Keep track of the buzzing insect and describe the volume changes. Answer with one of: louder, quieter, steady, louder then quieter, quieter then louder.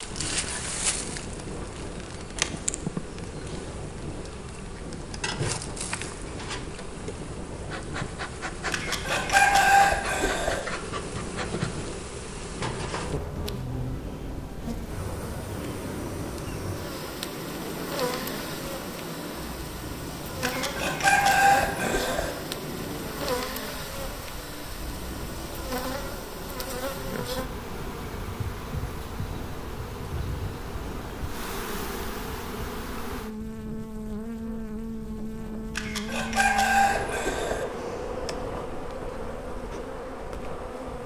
steady.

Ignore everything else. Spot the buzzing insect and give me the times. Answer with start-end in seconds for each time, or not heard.
0.0-41.0.